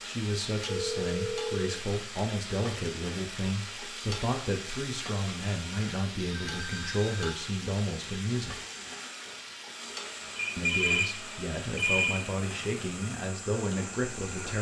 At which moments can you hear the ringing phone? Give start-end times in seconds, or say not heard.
0.7-1.9, 6.5-7.2, 10.3-12.2.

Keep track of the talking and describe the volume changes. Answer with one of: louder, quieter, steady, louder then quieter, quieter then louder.
steady.